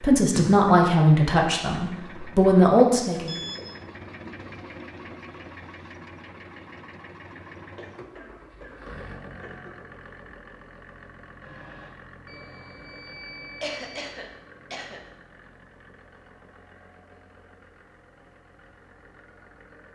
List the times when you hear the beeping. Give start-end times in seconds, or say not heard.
3.2-3.7, 11.4-14.2.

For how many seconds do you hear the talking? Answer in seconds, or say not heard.
3 s.